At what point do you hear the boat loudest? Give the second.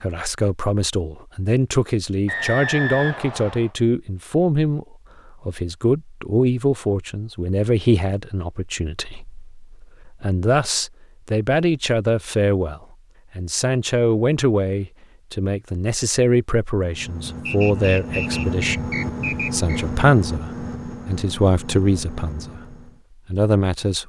19 s.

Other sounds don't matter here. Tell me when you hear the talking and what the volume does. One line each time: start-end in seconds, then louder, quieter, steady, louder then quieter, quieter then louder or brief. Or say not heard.
0.0-24.0 steady.